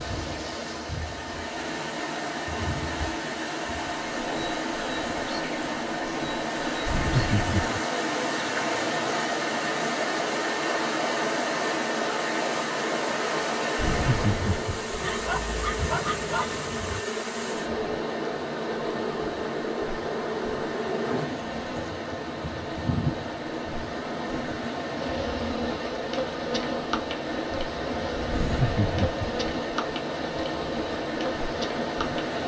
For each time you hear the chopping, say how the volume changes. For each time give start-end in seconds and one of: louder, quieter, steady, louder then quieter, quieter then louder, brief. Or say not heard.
not heard.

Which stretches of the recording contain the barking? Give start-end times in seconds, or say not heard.
15.0-17.0.